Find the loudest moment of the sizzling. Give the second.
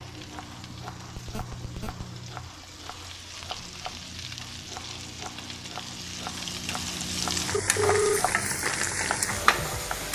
9 s.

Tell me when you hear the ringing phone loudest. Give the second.
8 s.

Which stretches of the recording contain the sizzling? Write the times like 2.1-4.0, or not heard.
0.0-10.1.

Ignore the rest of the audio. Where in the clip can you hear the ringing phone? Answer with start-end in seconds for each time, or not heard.
1.1-2.0, 7.5-8.2.